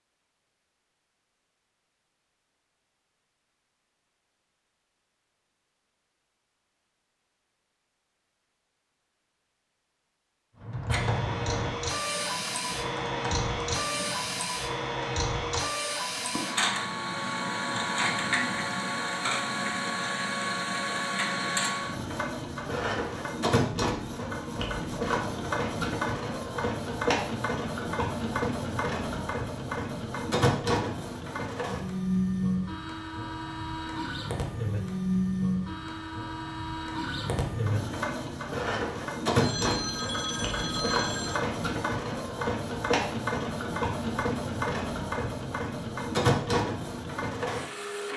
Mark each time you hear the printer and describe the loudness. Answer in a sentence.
You can hear the printer from 10.9 to 48.1 s, at a steady volume.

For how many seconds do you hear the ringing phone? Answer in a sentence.
You can hear the ringing phone for 2 seconds altogether.